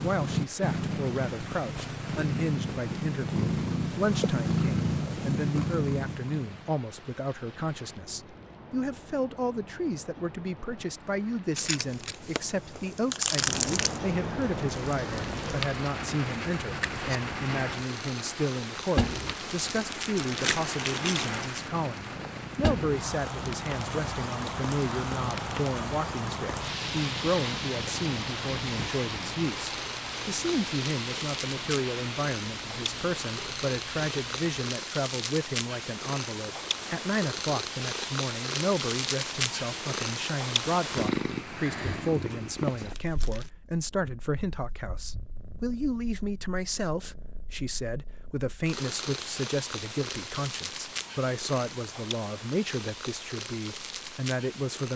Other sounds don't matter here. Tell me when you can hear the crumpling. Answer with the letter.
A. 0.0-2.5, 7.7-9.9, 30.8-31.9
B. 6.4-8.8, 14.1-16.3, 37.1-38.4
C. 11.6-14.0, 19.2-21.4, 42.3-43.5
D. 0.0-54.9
C.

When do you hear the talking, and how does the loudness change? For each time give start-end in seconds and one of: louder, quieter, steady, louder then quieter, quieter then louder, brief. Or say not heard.
0.0-54.9 steady.